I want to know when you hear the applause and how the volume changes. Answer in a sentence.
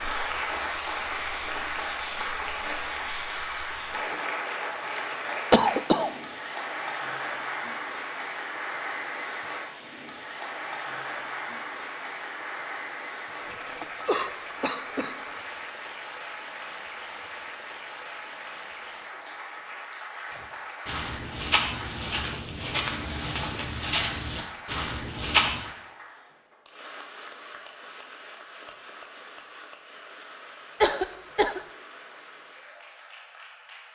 The applause can be heard from 0.0 to 33.9 s, getting quieter.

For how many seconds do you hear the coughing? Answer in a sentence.
You can hear the coughing for 4 seconds altogether.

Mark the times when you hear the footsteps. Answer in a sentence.
You can hear the footsteps from 20.4 to 25.6 s.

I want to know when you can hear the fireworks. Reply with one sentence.
You can't hear the fireworks here.